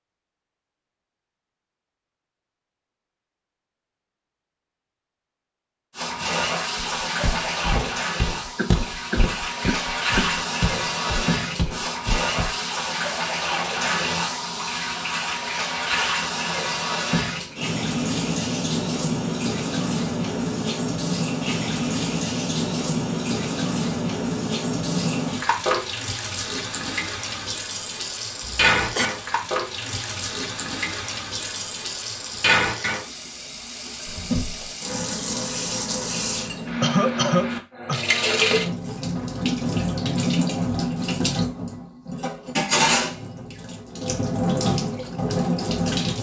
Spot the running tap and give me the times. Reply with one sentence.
The running tap can be heard from 5.9 to 46.1 s.